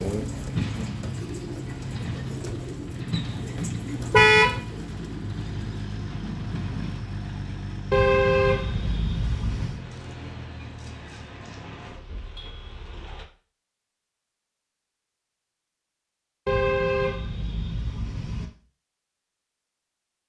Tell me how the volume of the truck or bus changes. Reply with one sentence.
The loudness of the truck or bus goes down.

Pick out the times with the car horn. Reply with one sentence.
The car horn can be heard from 4.1 to 4.6 s, from 7.9 to 9.8 s and from 16.4 to 18.5 s.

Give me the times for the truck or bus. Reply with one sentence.
The truck or bus can be heard from 0.0 to 13.2 s.